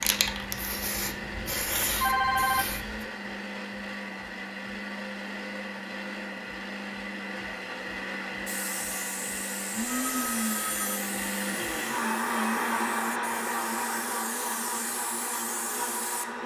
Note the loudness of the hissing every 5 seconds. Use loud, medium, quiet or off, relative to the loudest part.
loud, medium, medium, medium.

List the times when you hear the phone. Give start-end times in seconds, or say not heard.
1.1-2.8, 9.8-11.0.